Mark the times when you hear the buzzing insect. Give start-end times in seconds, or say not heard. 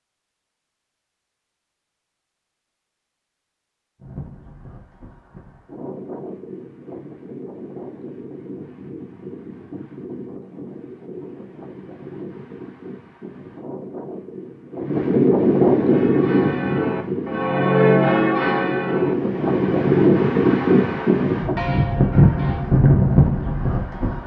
not heard.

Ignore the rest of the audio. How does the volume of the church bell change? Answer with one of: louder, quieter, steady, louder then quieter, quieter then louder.
louder then quieter.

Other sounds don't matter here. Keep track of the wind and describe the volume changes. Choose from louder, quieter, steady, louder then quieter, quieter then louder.
louder.